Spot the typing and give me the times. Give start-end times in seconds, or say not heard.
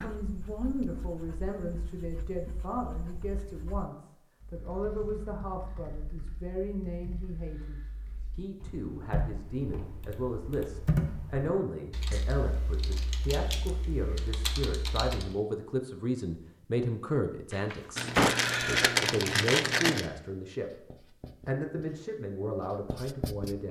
4.4-15.3.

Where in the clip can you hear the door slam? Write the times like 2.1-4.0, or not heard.
17.5-18.4.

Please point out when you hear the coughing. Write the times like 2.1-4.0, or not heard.
not heard.